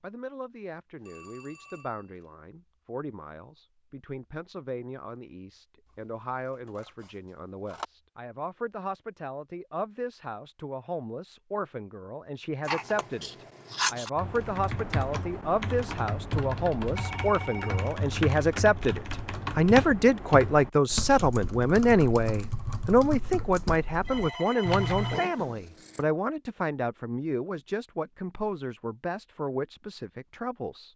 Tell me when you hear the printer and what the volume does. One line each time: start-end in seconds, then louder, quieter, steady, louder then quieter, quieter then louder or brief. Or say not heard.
not heard.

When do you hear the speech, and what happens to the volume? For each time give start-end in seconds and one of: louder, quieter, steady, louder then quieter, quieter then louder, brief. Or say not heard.
0.0-30.9 louder then quieter.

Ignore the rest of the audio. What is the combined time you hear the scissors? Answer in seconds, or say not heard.
4 s.